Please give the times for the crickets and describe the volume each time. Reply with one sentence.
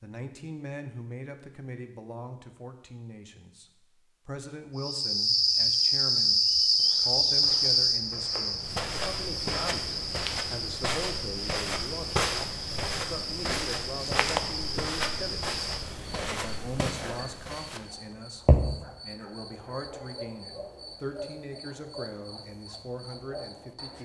You can hear the crickets from 4.8 to 23.9 s, getting quieter.